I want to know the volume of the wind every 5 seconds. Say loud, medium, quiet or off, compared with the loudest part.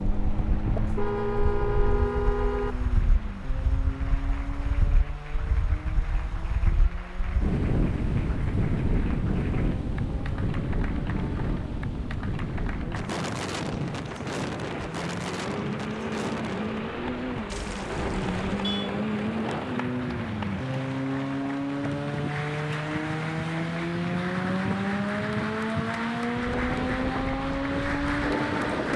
medium, loud, loud, medium, medium, loud.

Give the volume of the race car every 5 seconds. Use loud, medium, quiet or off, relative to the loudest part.
medium, quiet, quiet, loud, loud, loud.